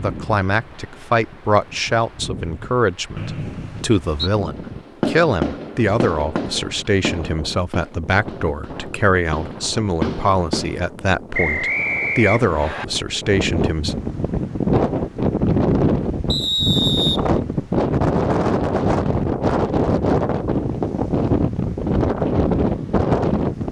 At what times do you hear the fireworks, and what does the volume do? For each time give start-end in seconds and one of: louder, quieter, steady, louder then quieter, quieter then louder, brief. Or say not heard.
4.4-10.8 quieter then louder.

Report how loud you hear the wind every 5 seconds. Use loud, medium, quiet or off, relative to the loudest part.
quiet, quiet, medium, loud, loud.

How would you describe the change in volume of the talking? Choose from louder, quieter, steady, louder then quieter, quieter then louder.
steady.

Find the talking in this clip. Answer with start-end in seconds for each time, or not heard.
0.0-13.9.